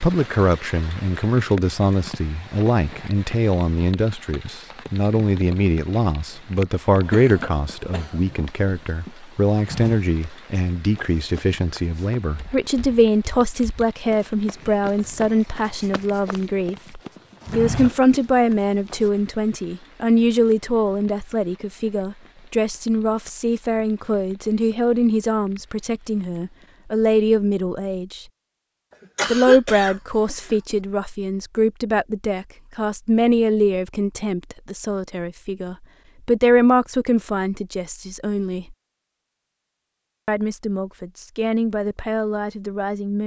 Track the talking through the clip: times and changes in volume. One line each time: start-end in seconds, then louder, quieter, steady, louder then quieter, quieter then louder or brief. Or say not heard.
0.0-28.2 steady
29.2-38.8 steady
40.2-43.2 brief.